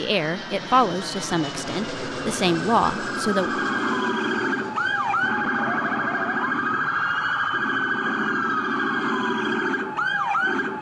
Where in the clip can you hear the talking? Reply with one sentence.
The talking can be heard from 0.0 to 3.5 s.